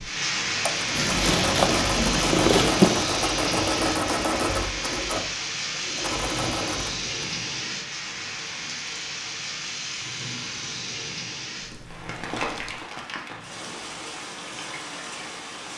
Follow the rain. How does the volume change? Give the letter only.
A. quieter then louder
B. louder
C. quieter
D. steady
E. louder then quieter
C.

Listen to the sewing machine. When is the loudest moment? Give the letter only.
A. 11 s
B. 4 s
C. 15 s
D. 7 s
B.